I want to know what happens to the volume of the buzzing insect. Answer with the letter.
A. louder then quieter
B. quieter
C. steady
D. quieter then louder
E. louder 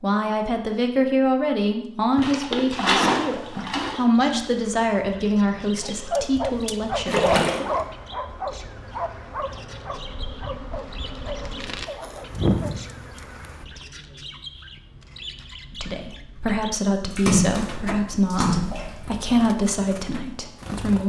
E.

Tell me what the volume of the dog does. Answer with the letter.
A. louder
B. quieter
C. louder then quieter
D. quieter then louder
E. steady
B.